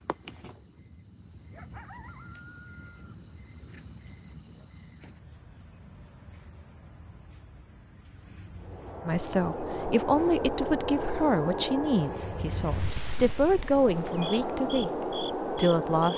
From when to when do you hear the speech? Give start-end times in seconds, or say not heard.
9.1-16.1.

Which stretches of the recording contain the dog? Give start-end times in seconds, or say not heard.
not heard.